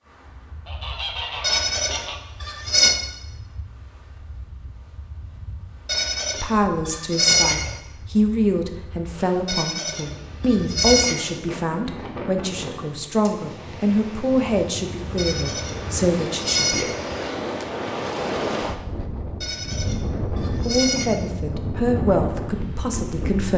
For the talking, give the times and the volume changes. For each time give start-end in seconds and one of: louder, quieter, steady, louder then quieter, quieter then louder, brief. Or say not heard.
6.4-16.9 steady
20.6-23.5 brief.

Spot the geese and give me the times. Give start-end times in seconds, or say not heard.
0.7-2.2.